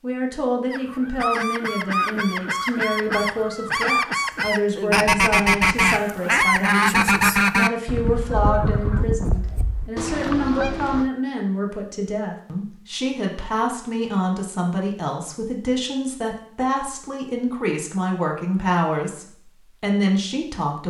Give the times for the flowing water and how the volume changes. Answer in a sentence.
The flowing water can't be heard in this clip.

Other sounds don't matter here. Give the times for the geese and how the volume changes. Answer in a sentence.
You can hear the geese from 0.7 to 11.1 s, getting louder then quieter.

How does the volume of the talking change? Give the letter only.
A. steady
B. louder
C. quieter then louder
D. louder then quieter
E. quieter
A.